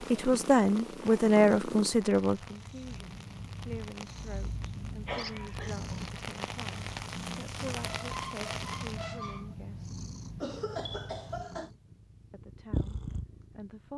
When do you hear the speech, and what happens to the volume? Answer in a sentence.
The speech can be heard from 0.0 to 9.9 s, getting quieter; and briefly from 12.3 to 13.9 s.